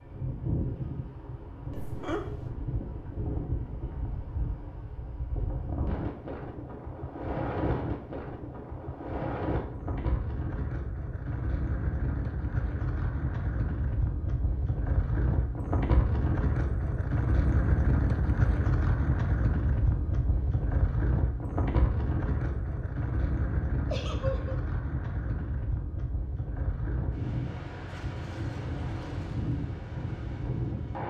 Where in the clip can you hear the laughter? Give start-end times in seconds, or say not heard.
1.7-2.5, 23.9-24.6.